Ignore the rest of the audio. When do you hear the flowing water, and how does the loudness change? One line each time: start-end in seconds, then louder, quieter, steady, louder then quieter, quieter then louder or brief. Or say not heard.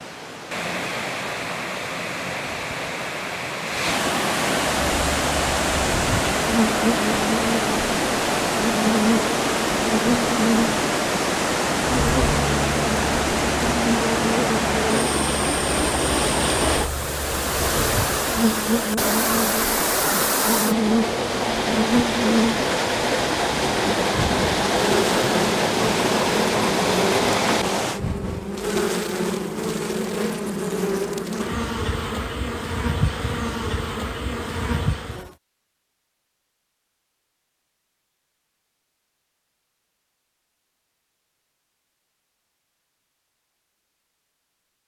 0.0-28.0 steady.